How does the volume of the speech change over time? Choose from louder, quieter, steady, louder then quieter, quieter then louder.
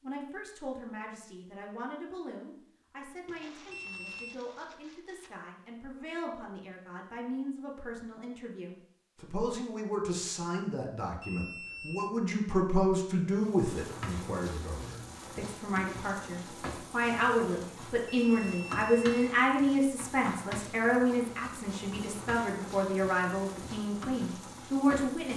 louder.